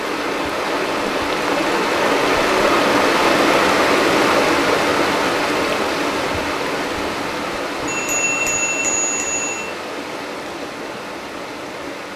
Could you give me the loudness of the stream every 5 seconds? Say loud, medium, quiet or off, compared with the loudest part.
loud, medium, quiet.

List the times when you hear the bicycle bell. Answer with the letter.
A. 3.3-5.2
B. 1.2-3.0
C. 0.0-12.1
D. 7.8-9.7
D.